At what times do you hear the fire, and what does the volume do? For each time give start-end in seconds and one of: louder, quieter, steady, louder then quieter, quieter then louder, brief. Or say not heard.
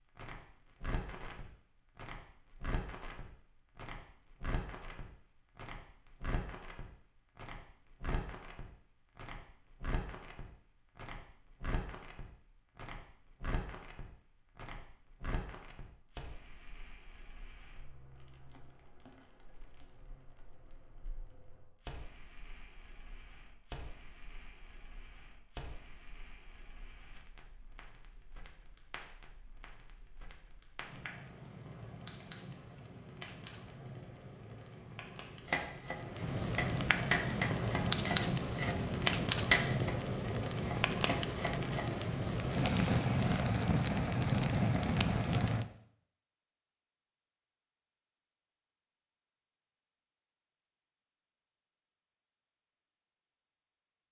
0.0-45.6 quieter then louder.